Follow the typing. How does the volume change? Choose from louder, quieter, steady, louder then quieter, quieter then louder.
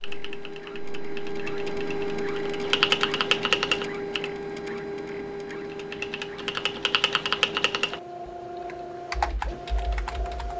louder then quieter.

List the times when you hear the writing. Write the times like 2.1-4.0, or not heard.
not heard.